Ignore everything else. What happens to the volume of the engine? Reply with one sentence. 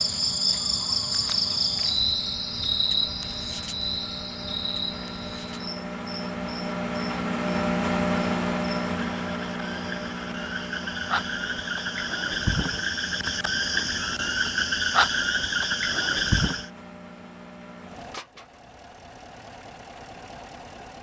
The volume of the engine goes up, then down.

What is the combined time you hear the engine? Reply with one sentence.
The engine can be heard for 21 seconds in total.